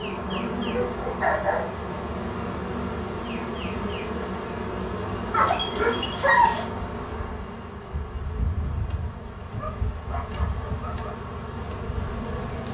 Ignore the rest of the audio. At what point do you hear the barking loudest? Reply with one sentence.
The loudest moment of the barking is at 6 seconds.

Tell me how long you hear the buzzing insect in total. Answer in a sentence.
You can hear the buzzing insect for 13 seconds altogether.